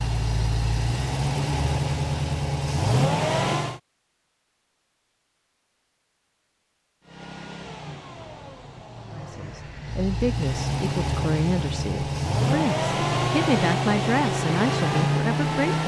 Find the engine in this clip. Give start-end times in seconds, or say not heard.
0.0-3.8, 7.0-15.8.